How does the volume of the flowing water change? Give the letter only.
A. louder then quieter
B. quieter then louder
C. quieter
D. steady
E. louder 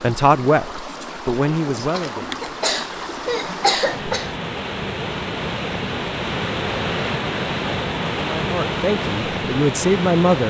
E.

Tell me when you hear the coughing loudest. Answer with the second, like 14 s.
4 s.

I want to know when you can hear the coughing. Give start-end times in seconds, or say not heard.
1.9-4.3.